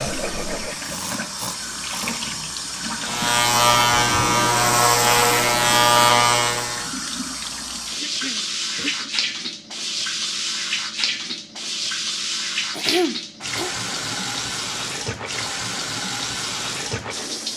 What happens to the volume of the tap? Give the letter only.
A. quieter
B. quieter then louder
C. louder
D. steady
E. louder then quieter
D.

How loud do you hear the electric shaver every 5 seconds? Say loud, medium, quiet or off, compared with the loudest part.
loud, loud, off, off.